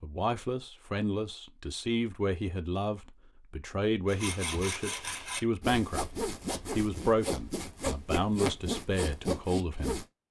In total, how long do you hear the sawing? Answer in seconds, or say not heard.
6 s.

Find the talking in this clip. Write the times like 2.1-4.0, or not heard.
0.0-6.0, 6.7-10.0.